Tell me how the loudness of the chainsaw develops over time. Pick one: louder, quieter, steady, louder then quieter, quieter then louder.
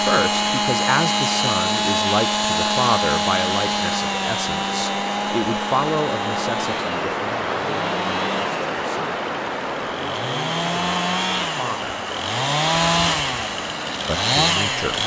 quieter then louder.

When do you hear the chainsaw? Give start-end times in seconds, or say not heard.
0.0-15.0.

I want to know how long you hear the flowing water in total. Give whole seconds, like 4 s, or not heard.
15 s.